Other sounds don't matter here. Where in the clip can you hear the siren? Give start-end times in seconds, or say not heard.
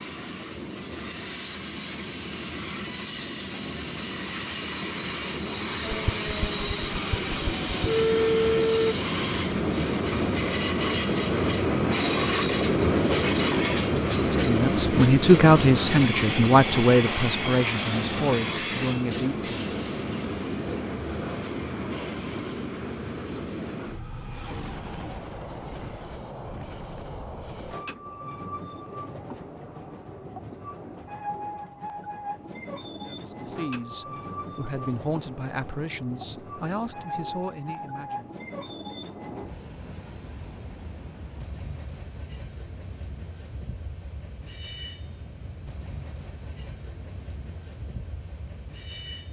5.8-8.9.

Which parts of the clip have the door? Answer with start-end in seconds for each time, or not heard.
not heard.